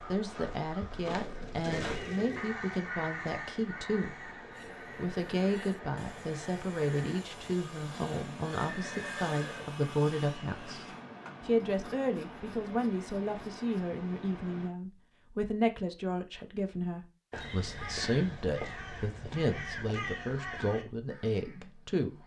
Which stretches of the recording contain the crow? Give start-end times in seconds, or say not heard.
0.0-7.2, 17.3-22.2.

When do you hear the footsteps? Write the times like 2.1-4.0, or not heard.
not heard.